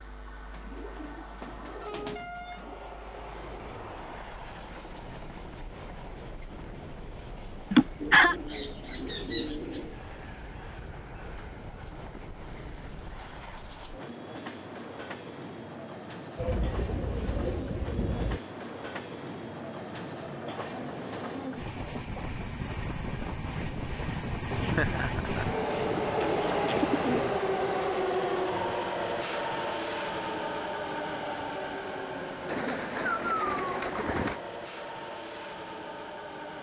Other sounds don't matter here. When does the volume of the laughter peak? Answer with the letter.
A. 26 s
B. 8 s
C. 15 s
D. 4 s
B.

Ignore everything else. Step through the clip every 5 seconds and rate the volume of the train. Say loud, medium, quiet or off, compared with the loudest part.
quiet, quiet, quiet, medium, medium, loud, medium, medium.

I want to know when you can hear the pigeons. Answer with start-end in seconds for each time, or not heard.
0.5-2.8, 8.0-9.9, 16.4-18.4, 25.7-27.4, 32.5-34.4.